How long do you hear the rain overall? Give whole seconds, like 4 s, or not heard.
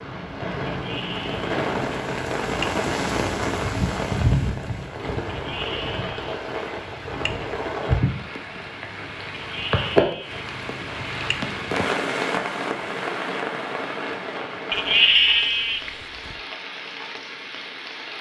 18 s.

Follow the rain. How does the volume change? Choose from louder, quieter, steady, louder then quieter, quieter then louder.
quieter.